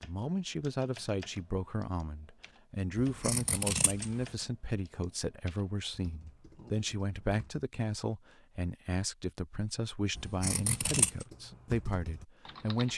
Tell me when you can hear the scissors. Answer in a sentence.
The scissors can be heard from 3.0 to 4.2 s and from 10.2 to 11.2 s.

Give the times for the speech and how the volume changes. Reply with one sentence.
The speech can be heard from 0.0 to 12.9 s, at a steady volume.